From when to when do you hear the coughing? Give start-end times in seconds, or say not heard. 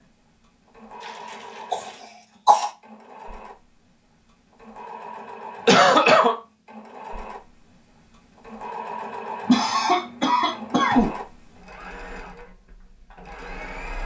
1.7-2.7, 5.7-6.3, 9.4-11.1.